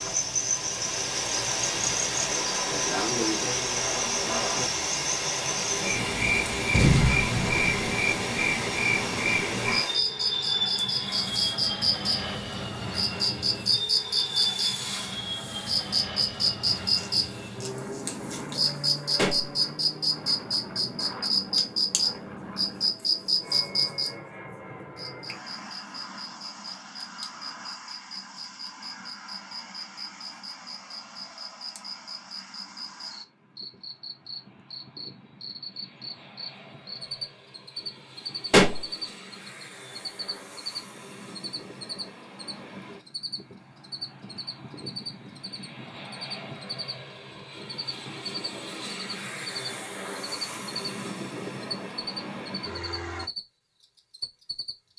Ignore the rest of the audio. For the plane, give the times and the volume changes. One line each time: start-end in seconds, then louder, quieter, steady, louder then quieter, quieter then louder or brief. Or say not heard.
0.0-53.3 quieter then louder.